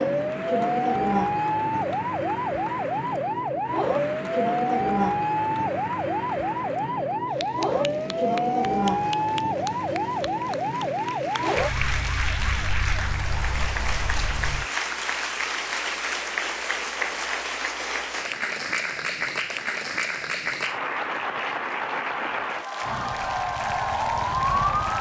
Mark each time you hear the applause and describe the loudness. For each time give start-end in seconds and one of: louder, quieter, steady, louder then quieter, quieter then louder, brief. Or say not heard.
0.0-24.9 louder.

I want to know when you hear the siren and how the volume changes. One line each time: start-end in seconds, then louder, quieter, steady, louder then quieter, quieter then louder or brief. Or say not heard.
0.0-14.7 quieter
22.8-24.9 brief.